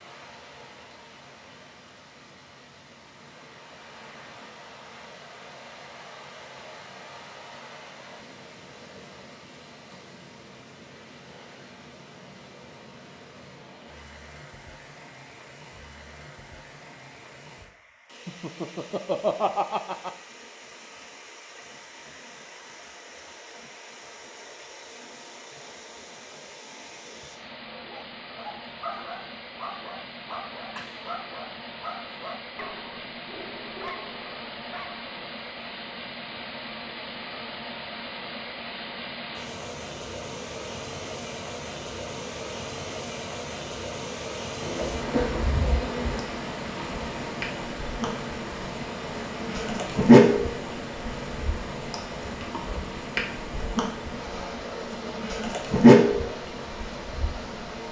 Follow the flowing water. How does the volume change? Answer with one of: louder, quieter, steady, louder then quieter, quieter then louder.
louder.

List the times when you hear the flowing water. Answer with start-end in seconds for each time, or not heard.
0.0-57.8.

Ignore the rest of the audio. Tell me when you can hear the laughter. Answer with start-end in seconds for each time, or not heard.
18.2-20.1.